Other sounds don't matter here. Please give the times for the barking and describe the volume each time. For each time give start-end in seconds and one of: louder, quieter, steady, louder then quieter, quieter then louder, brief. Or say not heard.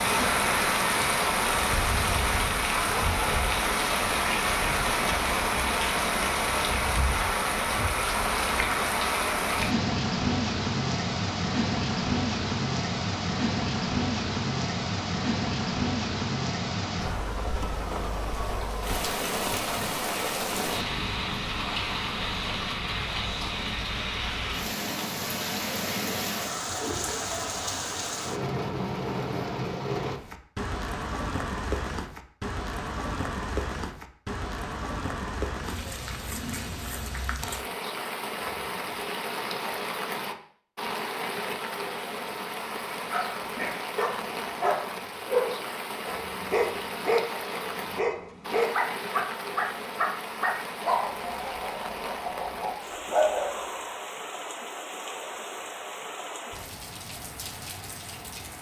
43.0-54.0 steady.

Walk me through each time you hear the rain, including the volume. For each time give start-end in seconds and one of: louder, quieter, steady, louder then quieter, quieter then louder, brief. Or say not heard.
0.0-58.5 quieter.